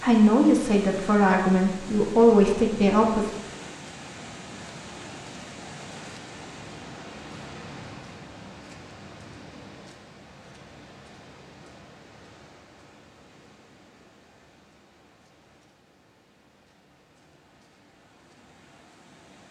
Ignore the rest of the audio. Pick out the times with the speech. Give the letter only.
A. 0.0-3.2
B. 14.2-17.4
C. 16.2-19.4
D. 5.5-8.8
A.